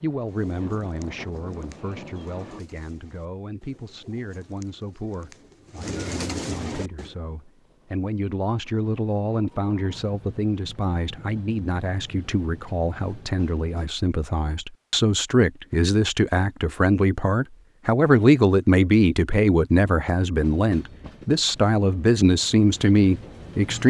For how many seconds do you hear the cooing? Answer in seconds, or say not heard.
7 s.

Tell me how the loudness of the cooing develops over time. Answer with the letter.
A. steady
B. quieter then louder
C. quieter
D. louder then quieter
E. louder
E.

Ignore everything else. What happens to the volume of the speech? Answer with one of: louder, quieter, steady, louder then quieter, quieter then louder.
louder.